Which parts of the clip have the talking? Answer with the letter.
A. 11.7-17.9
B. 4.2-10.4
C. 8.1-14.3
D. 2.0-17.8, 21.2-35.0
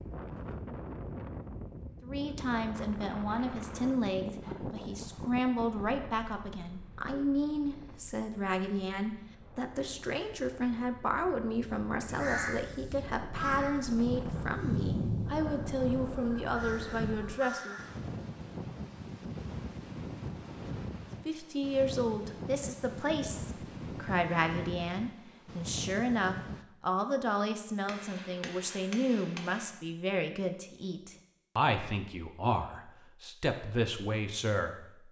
D.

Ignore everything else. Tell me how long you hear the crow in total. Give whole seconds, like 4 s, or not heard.
6 s.